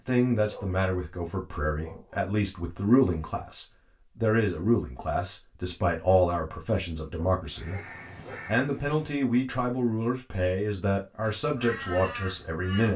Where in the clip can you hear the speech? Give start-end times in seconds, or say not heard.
0.1-7.8, 8.4-12.9.